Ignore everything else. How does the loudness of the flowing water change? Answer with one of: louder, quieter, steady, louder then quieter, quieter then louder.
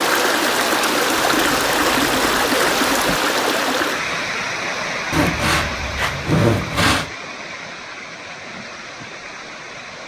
quieter.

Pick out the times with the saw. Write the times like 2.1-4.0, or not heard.
1.1-3.2, 5.1-7.1.